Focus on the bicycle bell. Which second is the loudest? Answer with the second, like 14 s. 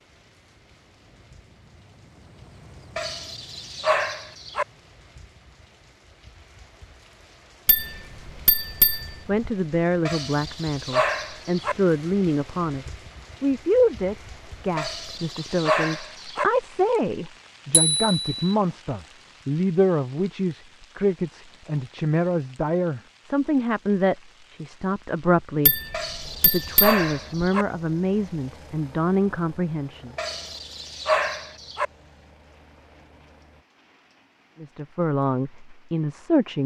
18 s.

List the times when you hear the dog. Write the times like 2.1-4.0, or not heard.
3.0-4.7, 10.1-11.8, 14.8-16.4, 25.9-27.6, 30.1-31.9.